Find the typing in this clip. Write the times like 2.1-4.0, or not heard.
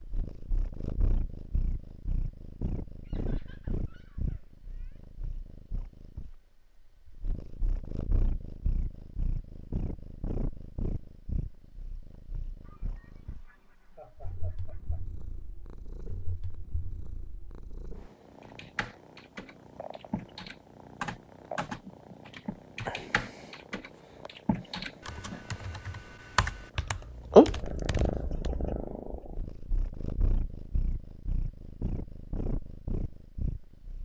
18.4-28.5.